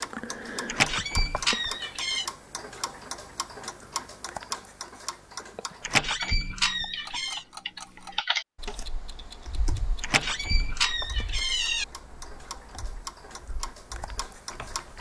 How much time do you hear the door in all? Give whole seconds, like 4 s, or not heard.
5 s.